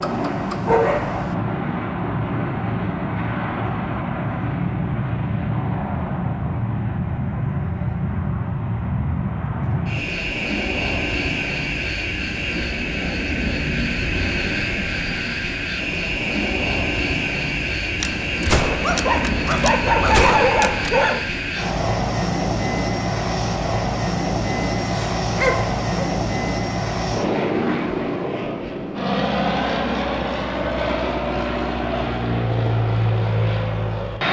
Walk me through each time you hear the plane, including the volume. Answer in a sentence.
You can hear the plane from 0.0 to 34.2 s, at a steady volume.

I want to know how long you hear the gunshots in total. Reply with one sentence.
You can hear the gunshots for 3 seconds altogether.